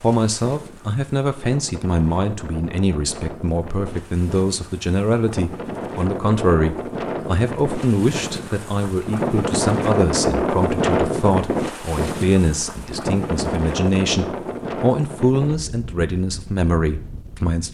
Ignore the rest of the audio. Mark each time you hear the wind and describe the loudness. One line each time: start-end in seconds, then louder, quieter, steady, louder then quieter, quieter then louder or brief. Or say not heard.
0.0-17.6 louder then quieter.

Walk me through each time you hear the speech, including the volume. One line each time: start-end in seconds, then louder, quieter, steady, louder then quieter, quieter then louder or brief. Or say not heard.
0.0-17.6 steady.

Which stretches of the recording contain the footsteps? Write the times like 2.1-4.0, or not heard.
not heard.